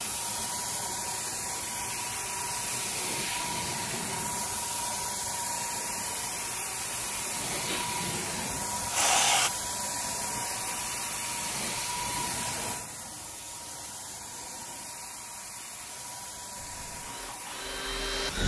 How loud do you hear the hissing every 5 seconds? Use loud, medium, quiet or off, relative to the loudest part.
loud, loud, loud, medium.